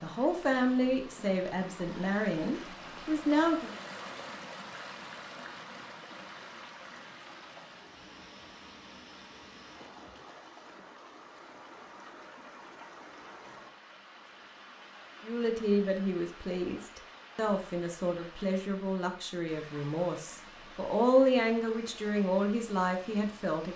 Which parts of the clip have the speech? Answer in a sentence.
The speech can be heard from 0.0 to 3.7 s and from 15.2 to 23.7 s.